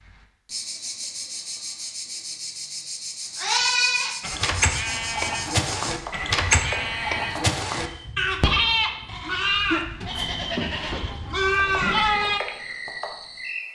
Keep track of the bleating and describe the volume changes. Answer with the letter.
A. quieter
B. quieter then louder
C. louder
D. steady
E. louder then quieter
D.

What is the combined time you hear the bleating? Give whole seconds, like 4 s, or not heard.
9 s.